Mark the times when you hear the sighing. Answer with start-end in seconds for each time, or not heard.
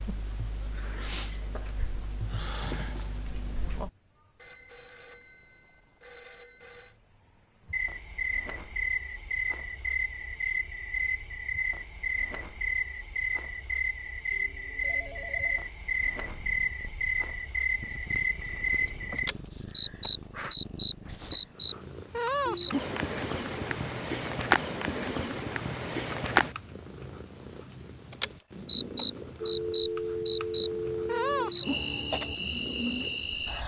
2.3-3.1, 19.1-20.6.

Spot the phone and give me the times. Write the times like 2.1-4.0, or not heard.
4.3-7.0, 14.3-15.7, 29.4-31.4.